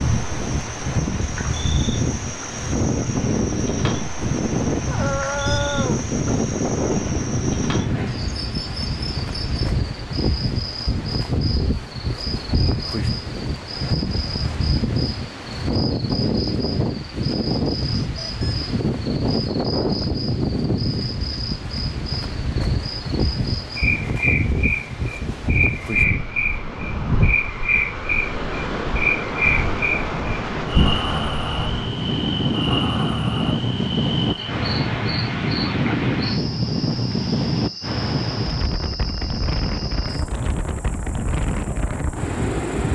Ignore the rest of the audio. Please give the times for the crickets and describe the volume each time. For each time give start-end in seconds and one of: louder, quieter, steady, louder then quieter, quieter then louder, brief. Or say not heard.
0.0-42.8 louder then quieter.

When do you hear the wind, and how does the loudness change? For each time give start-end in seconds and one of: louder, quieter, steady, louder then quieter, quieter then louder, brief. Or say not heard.
0.0-42.8 steady.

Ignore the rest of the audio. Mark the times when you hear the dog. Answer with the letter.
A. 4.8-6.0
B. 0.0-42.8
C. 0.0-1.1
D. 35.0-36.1
A.